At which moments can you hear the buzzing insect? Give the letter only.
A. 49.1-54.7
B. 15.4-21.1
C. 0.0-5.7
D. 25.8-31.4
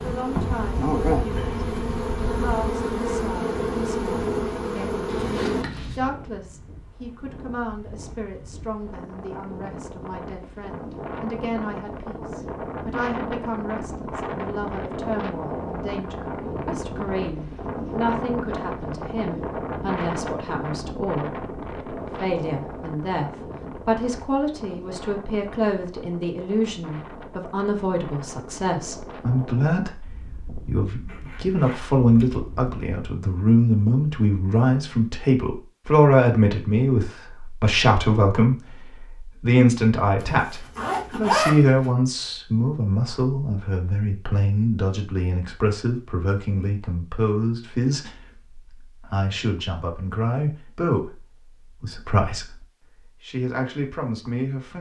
C.